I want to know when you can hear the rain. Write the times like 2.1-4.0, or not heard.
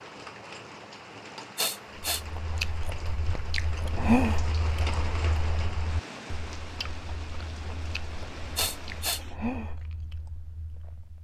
0.0-9.4.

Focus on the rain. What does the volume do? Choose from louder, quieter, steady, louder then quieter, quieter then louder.
louder then quieter.